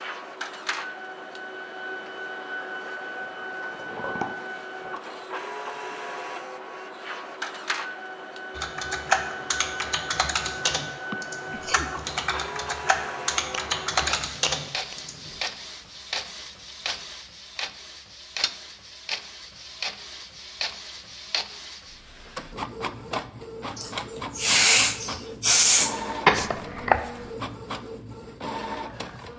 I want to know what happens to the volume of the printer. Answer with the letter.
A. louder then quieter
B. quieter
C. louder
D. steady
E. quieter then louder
D.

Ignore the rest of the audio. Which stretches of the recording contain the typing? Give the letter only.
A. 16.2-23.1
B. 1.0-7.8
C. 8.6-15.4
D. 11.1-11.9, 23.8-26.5
C.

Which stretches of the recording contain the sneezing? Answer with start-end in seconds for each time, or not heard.
11.1-11.9, 23.8-26.5.